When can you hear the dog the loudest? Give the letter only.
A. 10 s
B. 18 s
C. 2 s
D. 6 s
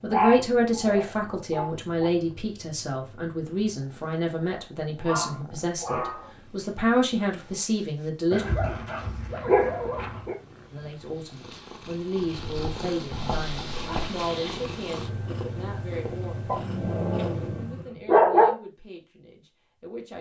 B.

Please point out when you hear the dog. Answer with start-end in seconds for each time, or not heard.
0.1-2.1, 5.0-6.3, 8.3-10.3, 12.3-14.2, 16.4-18.6.